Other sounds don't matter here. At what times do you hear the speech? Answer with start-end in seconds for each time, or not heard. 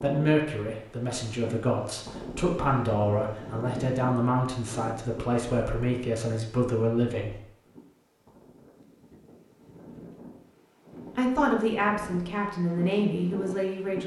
0.0-7.4, 11.2-14.0.